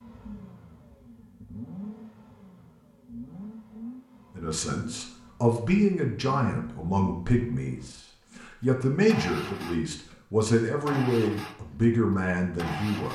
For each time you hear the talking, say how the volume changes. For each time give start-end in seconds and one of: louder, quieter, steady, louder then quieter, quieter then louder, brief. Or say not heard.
4.3-13.0 steady.